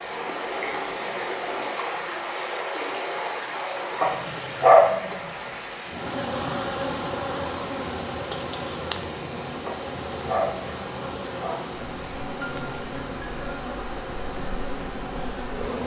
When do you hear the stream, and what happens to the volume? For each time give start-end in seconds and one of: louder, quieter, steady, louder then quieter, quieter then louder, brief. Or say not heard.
0.0-15.8 quieter.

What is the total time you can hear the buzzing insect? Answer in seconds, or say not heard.
10 s.